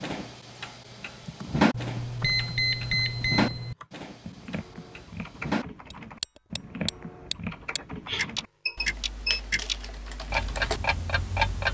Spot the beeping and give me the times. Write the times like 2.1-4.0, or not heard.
1.7-3.8, 8.1-9.4.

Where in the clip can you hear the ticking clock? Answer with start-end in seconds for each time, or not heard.
0.0-11.6.